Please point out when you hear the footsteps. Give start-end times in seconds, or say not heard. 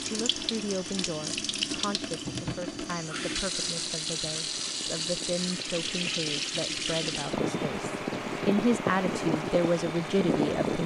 not heard.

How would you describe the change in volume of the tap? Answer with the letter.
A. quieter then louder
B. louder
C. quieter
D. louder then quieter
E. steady
C.